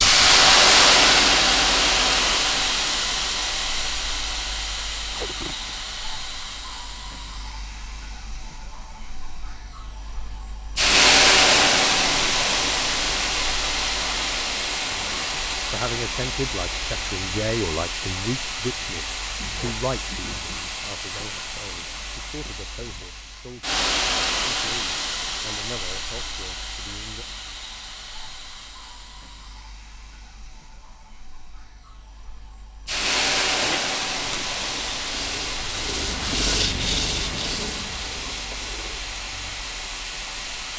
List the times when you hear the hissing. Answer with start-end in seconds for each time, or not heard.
0.0-40.7.